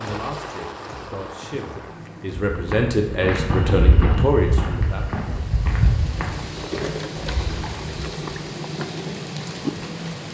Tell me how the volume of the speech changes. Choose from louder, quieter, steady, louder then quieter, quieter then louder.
louder.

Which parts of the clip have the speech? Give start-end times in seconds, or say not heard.
0.0-5.1.